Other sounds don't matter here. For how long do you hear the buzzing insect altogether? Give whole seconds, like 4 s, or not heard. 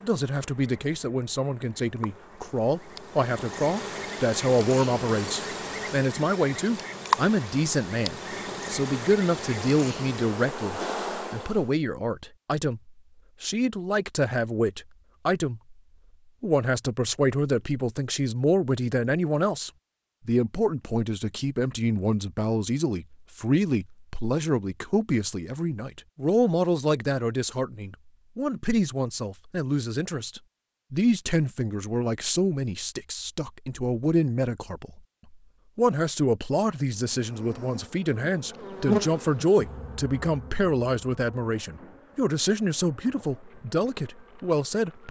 20 s.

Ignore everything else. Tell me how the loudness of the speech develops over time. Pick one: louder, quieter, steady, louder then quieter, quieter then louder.
steady.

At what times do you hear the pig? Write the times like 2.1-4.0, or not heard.
not heard.